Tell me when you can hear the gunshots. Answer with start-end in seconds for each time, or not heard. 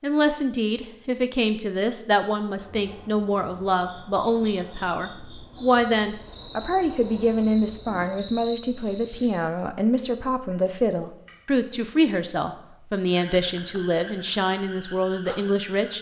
not heard.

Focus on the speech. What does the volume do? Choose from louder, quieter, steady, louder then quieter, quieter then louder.
steady.